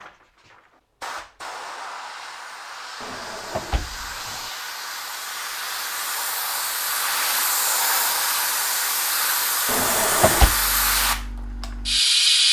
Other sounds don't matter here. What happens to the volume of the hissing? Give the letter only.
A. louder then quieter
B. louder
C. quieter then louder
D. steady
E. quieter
B.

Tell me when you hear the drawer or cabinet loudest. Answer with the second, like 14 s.
10 s.